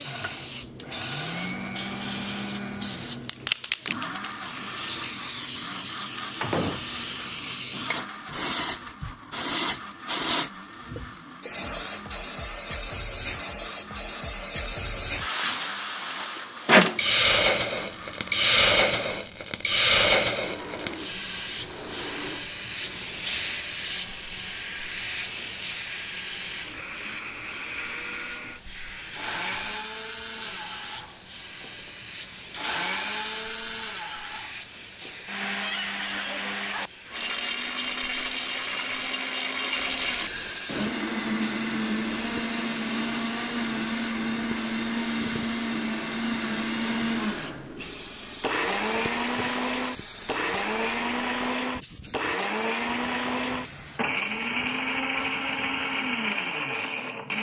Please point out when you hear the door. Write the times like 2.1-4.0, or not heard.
6.4-7.1.